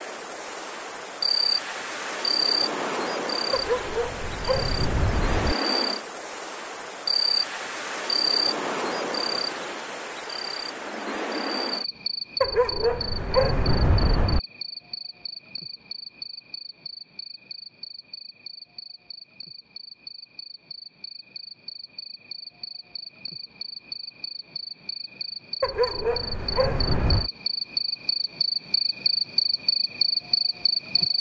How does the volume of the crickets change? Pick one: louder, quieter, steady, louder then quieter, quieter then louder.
quieter then louder.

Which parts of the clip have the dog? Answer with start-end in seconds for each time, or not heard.
3.5-5.5, 12.4-14.4, 25.6-27.3.